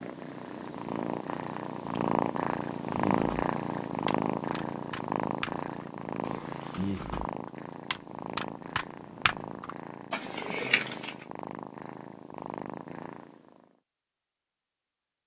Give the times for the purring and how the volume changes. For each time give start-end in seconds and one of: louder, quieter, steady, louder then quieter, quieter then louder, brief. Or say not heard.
0.0-13.7 quieter.